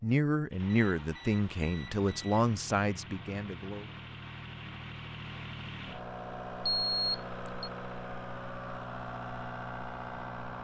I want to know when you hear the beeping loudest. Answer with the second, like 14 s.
7 s.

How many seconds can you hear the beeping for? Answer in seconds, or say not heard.
3 s.